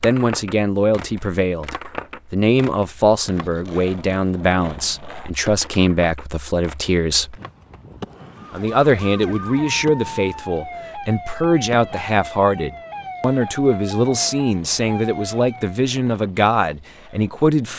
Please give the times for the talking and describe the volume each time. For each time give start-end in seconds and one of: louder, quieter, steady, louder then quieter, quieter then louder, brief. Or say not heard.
0.0-7.3 steady
8.5-17.7 steady.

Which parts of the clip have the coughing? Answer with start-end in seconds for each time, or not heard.
not heard.